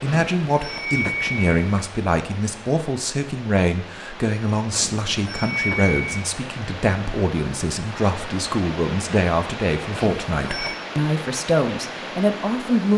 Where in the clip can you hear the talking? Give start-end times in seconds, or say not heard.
0.0-12.9.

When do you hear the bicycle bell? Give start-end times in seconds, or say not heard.
0.1-1.9, 4.7-6.3, 9.9-10.8.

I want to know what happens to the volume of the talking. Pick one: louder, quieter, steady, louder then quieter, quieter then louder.
steady.